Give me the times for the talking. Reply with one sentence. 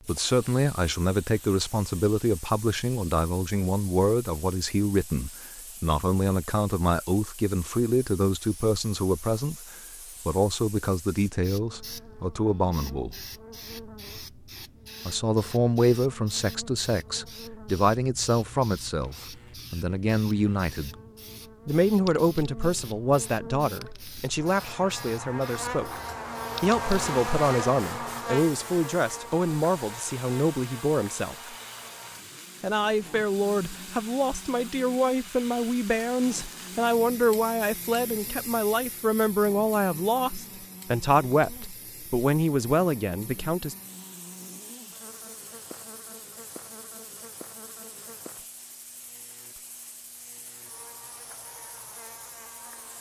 The talking can be heard from 0.1 to 13.2 s, from 15.1 to 20.9 s, from 21.6 to 25.9 s, from 26.6 to 31.6 s and from 32.6 to 43.8 s.